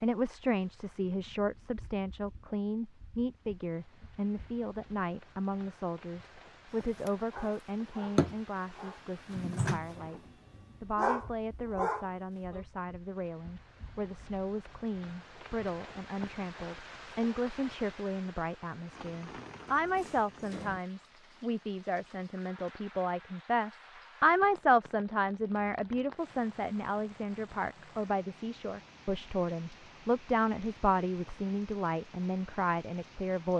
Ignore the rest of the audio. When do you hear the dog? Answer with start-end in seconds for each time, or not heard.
7.0-12.7.